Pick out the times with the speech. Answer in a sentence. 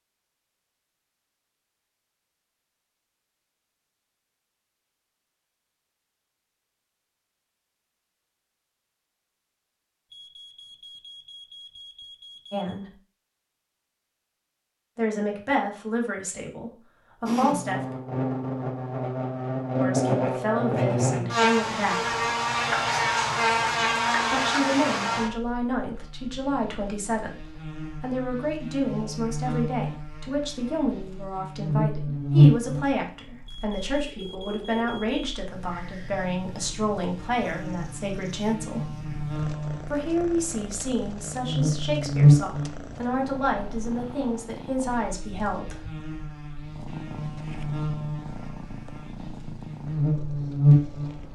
You can hear the speech from 12.5 to 12.9 s, from 14.9 to 17.9 s, from 19.8 to 22.1 s, from 24.3 to 38.9 s and from 39.9 to 45.8 s.